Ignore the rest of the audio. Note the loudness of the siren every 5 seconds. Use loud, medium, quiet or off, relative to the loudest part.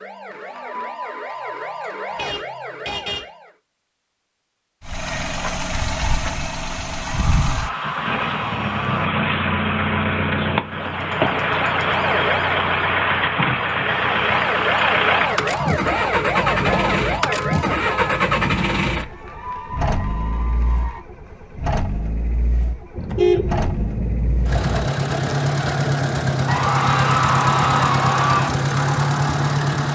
medium, off, loud, loud, off, off.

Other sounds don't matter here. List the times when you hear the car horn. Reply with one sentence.
You can hear the car horn from 2.0 to 3.2 s, from 16.6 to 18.2 s and from 22.9 to 24.9 s.